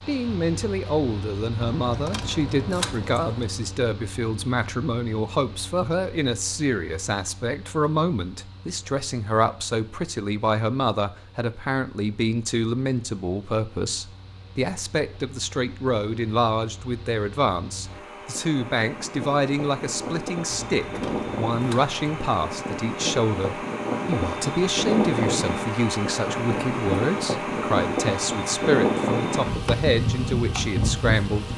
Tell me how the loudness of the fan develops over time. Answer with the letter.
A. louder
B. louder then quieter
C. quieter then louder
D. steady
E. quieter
C.